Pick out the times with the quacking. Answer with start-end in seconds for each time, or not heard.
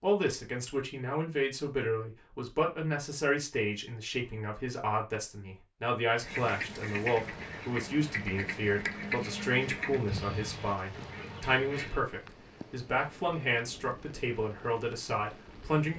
6.2-12.0.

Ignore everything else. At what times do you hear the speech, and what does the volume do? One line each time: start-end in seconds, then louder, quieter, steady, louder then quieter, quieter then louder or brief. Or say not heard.
0.0-15.9 steady.